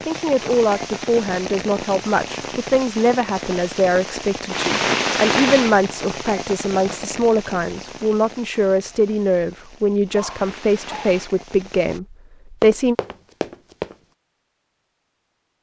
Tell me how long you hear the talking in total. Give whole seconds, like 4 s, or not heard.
13 s.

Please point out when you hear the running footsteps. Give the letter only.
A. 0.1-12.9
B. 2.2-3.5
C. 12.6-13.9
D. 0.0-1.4
C.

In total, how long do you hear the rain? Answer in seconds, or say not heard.
12 s.